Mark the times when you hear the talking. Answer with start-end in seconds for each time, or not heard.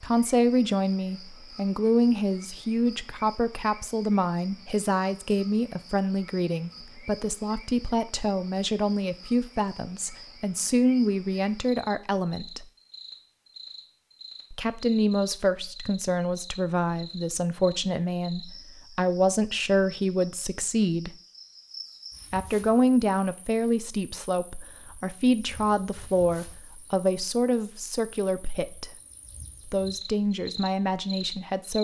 0.0-12.7, 14.5-21.1, 22.3-28.9, 29.6-31.8.